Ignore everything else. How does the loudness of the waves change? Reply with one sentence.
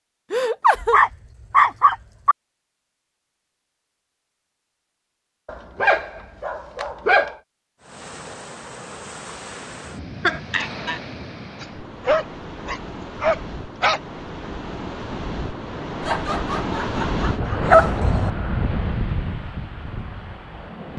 The loudness of the waves goes up.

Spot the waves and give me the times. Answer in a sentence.
The waves can be heard from 7.8 to 20.9 s.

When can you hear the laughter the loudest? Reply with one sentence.
The volume of the laughter peaks at 1 second.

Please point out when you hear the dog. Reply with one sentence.
The dog can be heard from 0.8 to 2.4 s, from 5.5 to 7.3 s, from 11.6 to 14.0 s and from 17.7 to 18.3 s.